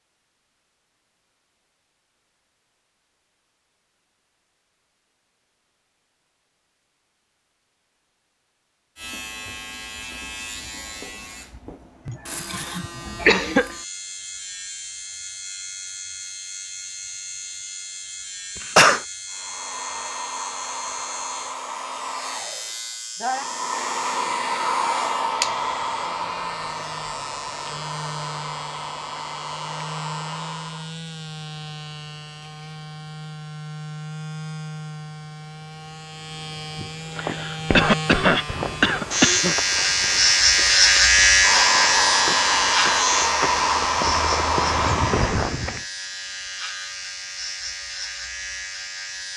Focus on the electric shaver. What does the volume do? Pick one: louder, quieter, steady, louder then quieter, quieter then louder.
louder.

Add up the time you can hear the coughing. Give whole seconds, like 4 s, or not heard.
5 s.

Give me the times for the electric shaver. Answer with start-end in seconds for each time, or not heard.
8.9-49.3.